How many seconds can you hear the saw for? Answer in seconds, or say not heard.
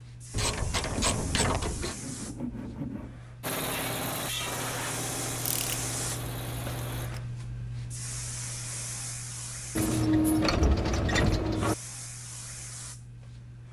2 s.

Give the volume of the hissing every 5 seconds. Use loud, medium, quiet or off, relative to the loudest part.
medium, loud, medium.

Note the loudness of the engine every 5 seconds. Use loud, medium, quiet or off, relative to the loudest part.
loud, medium, off.